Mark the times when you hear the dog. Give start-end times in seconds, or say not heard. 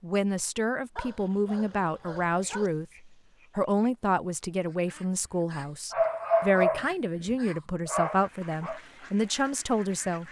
0.9-2.7, 5.9-8.8.